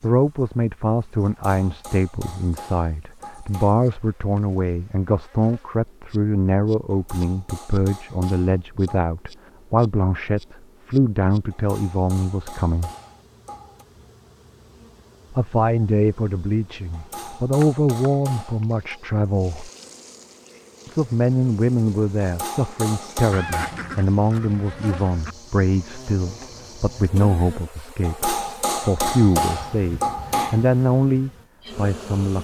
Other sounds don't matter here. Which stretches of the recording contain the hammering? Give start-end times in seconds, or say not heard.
1.2-3.8, 6.9-9.1, 11.5-13.8, 16.9-19.0, 22.2-23.8, 28.0-30.6.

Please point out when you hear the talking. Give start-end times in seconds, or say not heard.
0.0-12.9, 15.3-19.7, 20.9-32.3.